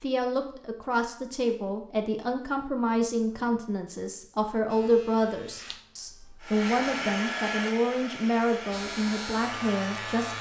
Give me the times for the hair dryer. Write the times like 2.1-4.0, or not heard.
6.4-10.3.